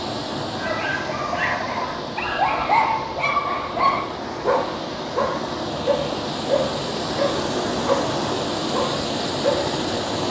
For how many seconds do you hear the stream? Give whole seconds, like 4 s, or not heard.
10 s.